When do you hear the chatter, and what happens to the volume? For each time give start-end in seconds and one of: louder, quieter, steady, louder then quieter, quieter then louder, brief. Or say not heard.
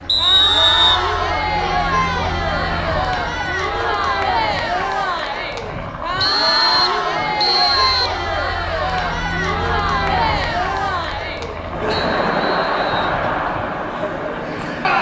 0.0-14.9 steady.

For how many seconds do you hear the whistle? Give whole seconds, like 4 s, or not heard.
4 s.